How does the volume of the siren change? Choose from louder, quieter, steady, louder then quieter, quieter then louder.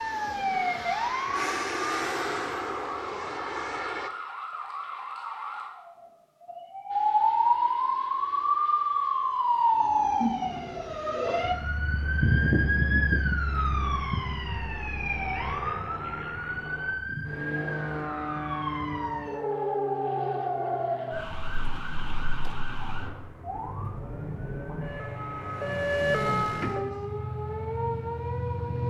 louder then quieter.